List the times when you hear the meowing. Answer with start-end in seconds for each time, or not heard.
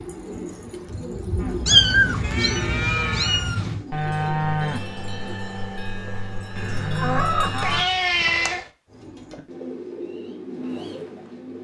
1.6-3.8, 7.6-8.7.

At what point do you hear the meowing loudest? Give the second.
2 s.